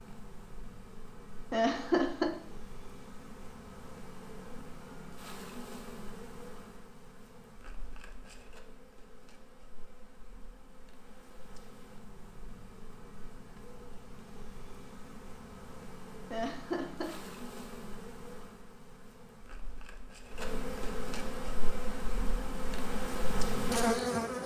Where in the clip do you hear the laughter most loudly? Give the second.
2 s.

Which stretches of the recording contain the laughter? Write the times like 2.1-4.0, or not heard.
1.5-2.3, 16.3-17.1.